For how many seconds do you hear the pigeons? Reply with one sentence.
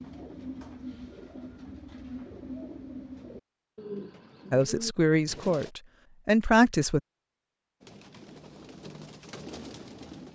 You can hear the pigeons for 8 seconds altogether.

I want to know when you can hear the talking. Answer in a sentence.
The talking can be heard from 4.5 to 7.0 s.